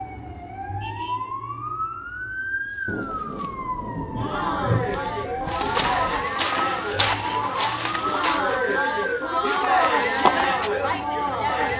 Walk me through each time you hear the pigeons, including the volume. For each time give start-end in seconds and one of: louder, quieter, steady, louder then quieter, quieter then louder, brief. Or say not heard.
not heard.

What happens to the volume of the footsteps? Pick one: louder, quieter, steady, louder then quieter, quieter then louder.
quieter then louder.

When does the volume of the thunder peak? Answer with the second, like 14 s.
5 s.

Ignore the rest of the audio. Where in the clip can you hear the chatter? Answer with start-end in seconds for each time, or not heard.
4.2-11.7.